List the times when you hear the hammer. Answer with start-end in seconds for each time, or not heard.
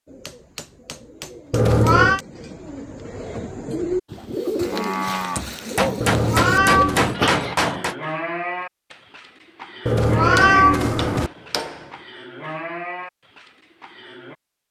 0.2-2.2, 5.0-8.0, 10.3-11.9.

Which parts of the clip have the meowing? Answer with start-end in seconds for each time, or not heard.
1.5-2.2, 6.0-7.2, 9.8-11.3.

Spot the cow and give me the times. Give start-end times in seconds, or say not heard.
4.5-14.3.